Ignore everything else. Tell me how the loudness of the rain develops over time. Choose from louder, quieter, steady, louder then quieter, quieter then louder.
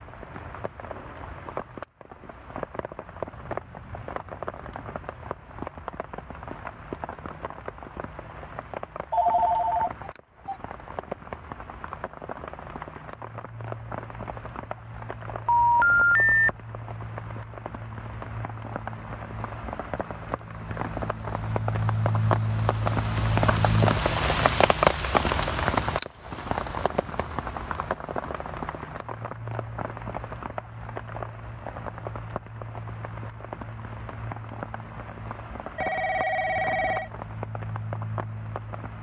louder then quieter.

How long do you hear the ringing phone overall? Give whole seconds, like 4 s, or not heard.
4 s.